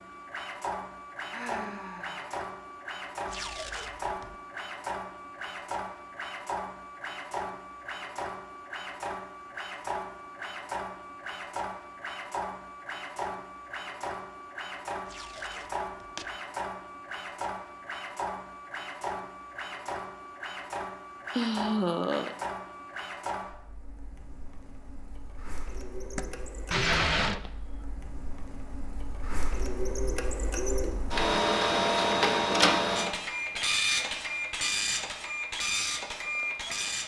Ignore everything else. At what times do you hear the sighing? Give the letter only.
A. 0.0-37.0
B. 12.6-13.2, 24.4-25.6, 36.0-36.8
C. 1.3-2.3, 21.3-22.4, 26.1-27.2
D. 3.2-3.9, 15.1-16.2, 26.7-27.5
C.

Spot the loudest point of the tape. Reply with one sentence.
The loudest moment of the tape is at 27 seconds.